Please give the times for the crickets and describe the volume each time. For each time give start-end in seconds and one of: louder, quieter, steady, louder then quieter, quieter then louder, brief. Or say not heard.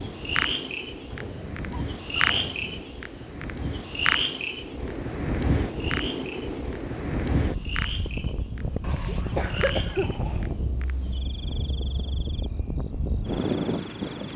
0.0-14.2 quieter.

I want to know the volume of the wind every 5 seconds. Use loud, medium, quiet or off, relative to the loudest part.
medium, loud, loud.